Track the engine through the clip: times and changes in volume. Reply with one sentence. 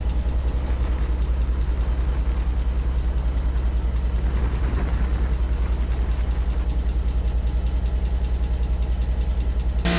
The engine can be heard from 0.0 to 9.9 s, at a steady volume.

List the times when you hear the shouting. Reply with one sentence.
You can't hear the shouting here.